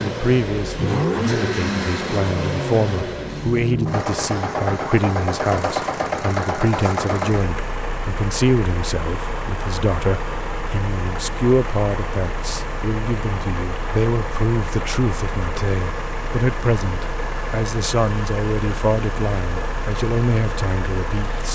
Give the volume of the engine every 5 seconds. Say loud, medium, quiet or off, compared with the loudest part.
loud, loud, medium, medium, medium.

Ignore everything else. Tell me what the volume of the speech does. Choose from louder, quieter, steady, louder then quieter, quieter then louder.
steady.